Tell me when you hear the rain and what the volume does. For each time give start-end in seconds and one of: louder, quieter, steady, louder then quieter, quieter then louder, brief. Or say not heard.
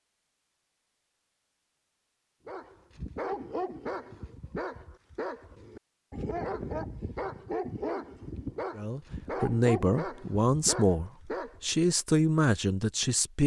not heard.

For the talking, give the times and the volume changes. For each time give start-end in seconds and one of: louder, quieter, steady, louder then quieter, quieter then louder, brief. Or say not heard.
8.8-13.4 steady.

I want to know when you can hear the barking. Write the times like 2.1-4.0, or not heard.
2.5-11.7.